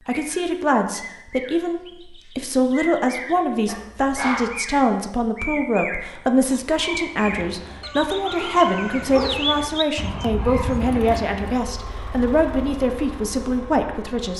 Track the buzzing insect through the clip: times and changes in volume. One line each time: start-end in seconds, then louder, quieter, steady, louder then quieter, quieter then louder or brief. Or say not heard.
not heard.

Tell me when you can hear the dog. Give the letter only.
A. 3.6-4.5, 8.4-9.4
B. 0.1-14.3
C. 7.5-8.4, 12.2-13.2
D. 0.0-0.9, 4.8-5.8
A.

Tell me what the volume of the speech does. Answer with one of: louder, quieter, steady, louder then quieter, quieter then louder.
steady.